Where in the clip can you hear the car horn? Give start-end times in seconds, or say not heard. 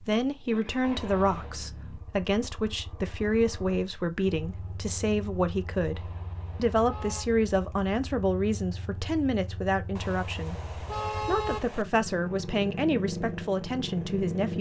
0.8-1.6, 6.0-7.2, 9.9-11.8.